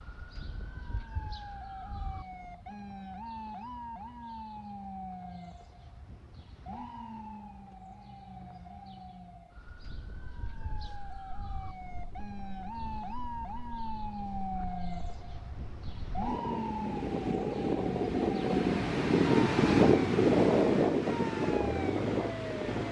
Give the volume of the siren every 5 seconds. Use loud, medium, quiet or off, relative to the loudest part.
medium, medium, loud, loud, loud.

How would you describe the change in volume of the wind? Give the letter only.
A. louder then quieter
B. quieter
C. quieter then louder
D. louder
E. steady
D.